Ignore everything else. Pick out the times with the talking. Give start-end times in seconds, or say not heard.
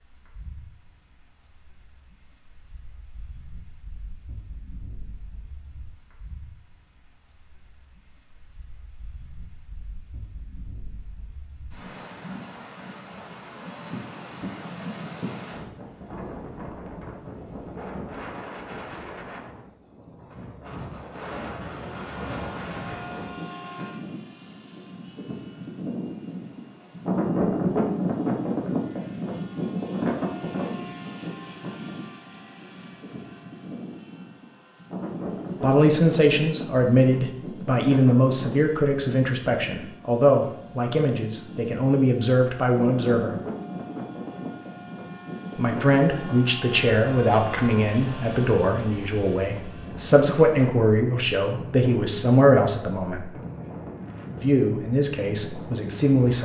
35.6-43.4, 45.5-53.2, 54.4-56.4.